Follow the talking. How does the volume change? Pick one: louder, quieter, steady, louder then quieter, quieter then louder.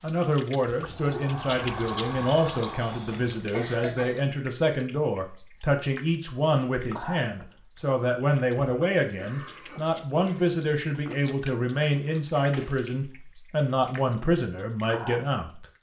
steady.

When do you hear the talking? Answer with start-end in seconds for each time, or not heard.
0.0-15.7.